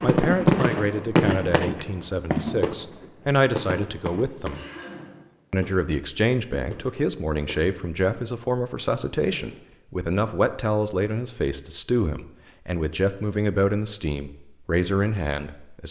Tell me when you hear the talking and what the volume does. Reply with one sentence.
The talking can be heard from 0.0 to 4.6 s, getting louder then quieter; and from 5.5 to 15.8 s, at a steady volume.